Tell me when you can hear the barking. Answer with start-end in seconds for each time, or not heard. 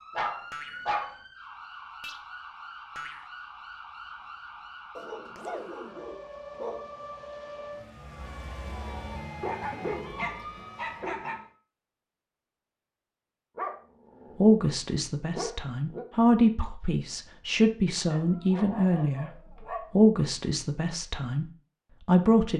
0.1-1.1, 5.0-6.8, 9.4-11.4, 13.6-14.6, 15.3-16.1, 18.1-19.9.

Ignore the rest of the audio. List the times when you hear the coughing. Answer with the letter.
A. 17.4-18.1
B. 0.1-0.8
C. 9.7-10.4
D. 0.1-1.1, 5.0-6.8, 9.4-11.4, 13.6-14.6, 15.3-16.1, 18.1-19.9
C.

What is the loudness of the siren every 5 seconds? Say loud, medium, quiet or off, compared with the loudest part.
loud, loud, loud, off, off.